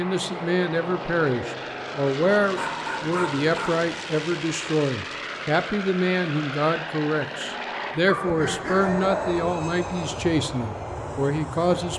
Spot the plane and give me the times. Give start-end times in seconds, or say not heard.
0.0-11.9.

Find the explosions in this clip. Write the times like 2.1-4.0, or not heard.
not heard.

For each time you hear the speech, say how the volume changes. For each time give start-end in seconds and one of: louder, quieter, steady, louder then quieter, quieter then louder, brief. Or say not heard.
0.0-11.9 steady.